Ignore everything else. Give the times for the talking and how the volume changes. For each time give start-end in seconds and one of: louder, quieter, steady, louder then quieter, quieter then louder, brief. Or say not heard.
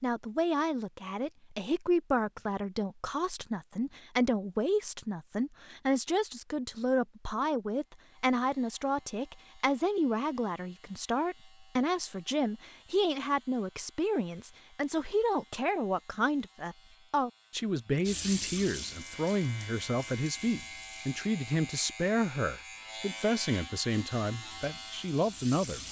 0.0-25.8 steady.